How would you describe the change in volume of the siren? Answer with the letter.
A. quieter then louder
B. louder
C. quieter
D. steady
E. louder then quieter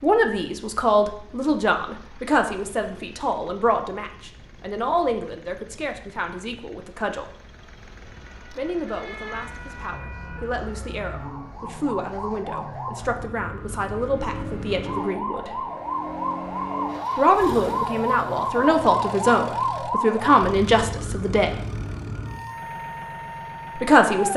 E.